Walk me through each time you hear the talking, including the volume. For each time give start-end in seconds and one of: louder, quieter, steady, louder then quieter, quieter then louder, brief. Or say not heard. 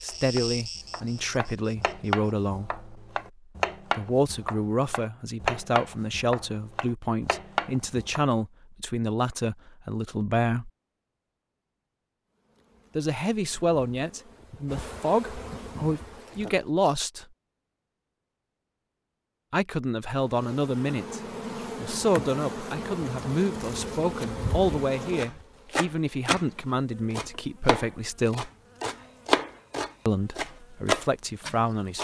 0.0-2.9 brief
4.0-10.7 steady
12.9-17.2 quieter then louder
19.5-28.5 steady
30.1-31.9 brief.